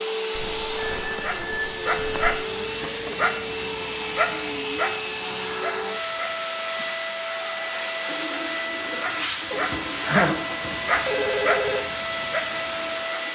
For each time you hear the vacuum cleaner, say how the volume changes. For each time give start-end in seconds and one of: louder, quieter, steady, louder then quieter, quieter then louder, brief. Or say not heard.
0.0-13.3 steady.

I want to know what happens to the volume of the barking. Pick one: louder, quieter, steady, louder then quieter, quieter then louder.
quieter then louder.